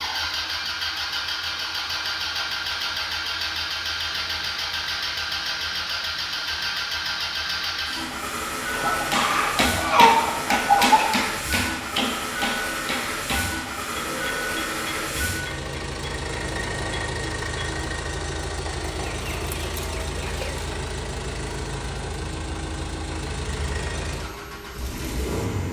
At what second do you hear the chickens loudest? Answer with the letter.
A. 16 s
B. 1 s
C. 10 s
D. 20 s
C.